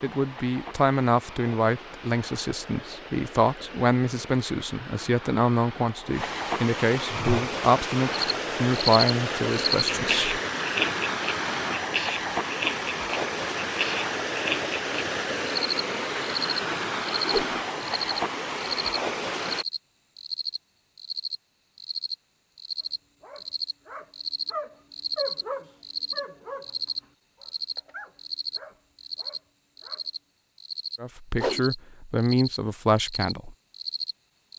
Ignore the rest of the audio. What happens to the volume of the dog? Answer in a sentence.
The volume of the dog goes up, then down.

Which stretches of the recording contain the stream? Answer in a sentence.
You can hear the stream from 0.0 to 19.6 s.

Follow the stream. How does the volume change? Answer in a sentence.
The loudness of the stream goes up.